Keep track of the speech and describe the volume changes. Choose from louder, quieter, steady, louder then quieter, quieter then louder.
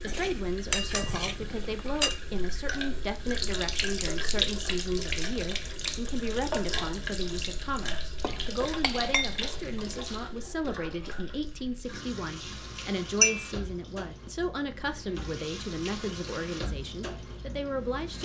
steady.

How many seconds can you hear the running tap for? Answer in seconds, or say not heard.
18 s.